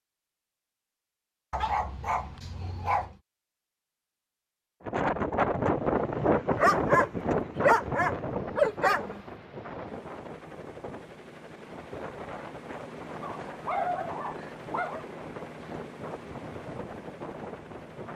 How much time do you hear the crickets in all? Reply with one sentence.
You can't hear the crickets here.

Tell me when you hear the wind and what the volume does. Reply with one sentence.
You can hear the wind from 4.8 to 18.1 s, getting quieter.